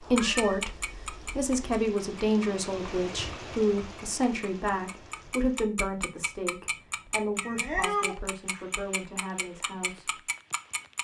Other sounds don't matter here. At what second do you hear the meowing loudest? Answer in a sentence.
The volume of the meowing peaks at 8 seconds.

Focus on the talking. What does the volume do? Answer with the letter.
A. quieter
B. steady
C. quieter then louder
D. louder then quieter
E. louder
A.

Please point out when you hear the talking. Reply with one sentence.
The talking can be heard from 0.0 to 10.2 s.